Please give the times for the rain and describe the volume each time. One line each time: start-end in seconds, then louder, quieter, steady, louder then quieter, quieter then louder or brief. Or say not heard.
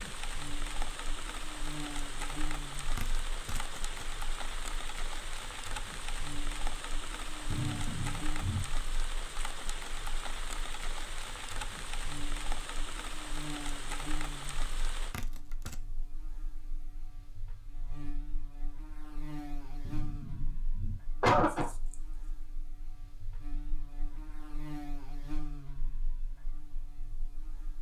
0.0-15.2 steady.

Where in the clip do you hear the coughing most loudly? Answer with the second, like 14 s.
21 s.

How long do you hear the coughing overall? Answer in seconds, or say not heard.
3 s.